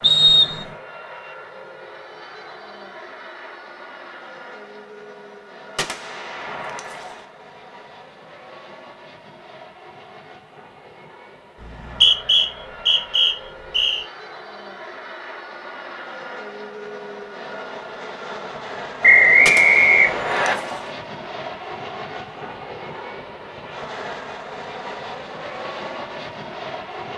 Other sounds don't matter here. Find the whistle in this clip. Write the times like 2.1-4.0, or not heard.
0.0-0.7, 11.6-14.1, 19.0-20.6.